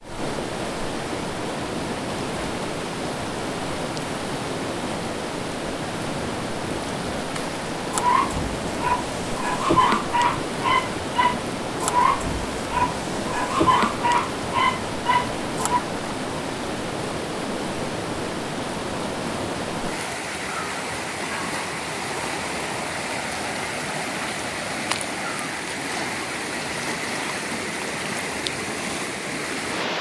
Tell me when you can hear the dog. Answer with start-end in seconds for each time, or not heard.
7.9-15.8.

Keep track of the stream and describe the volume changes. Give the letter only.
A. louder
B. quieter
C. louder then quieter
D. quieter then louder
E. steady
E.